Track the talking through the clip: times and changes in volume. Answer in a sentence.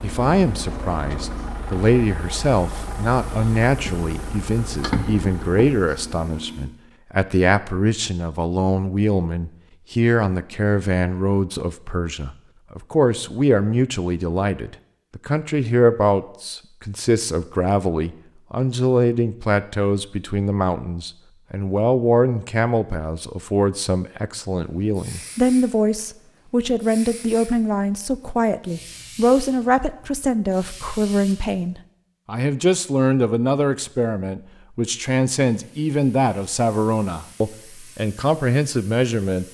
You can hear the talking from 0.0 to 39.4 s, at a steady volume.